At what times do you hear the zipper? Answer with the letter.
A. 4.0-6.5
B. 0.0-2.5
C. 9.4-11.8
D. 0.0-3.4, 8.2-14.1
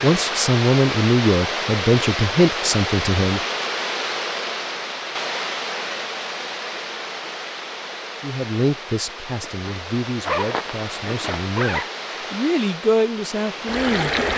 C.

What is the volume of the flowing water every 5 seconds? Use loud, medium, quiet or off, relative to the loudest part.
loud, medium, loud.